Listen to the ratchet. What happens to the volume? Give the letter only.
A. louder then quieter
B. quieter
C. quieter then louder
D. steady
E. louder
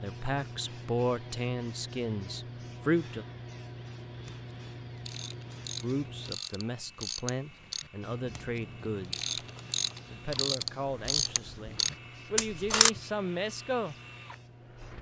E.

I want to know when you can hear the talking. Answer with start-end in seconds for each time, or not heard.
0.0-3.2, 5.8-9.2, 10.1-13.9.